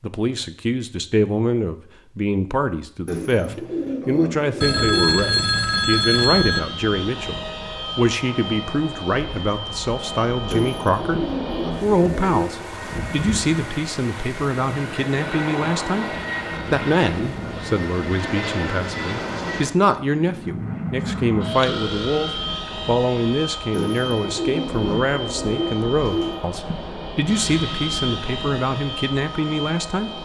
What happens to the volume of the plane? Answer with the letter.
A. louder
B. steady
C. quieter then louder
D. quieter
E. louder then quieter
B.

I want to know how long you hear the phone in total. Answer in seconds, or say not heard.
3 s.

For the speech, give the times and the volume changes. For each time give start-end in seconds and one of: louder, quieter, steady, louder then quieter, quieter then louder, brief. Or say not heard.
0.0-11.2 steady
11.8-30.1 steady.